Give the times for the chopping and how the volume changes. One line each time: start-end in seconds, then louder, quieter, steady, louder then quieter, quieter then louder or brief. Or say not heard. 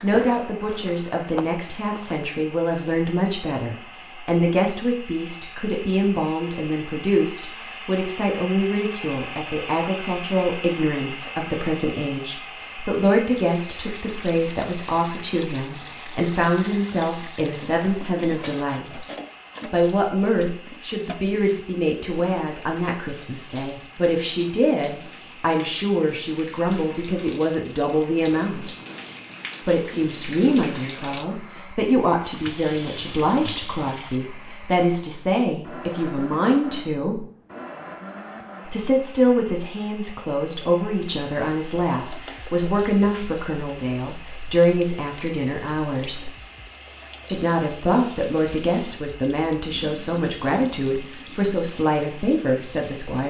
not heard.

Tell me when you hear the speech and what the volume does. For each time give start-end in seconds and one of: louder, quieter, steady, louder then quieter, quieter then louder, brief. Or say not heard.
0.0-19.1 steady
19.7-28.7 steady
29.6-37.2 steady
38.6-46.3 quieter then louder
47.2-53.2 steady.